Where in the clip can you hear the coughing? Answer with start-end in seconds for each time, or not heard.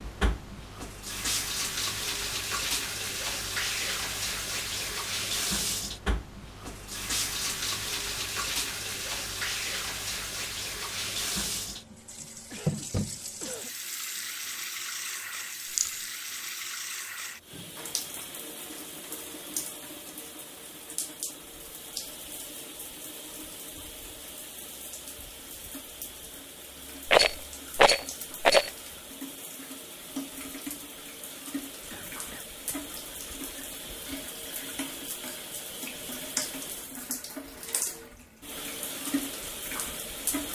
12.5-13.8, 31.9-32.8.